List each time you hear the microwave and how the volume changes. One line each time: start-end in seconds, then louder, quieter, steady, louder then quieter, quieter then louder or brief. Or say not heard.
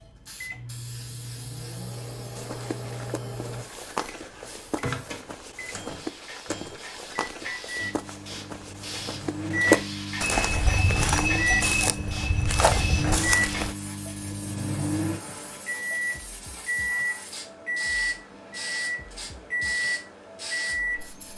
0.0-21.3 louder.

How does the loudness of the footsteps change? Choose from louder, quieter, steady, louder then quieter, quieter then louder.
louder.